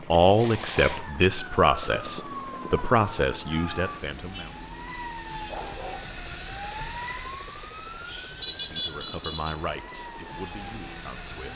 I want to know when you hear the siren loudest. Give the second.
9 s.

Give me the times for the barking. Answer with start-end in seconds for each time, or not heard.
5.3-6.2.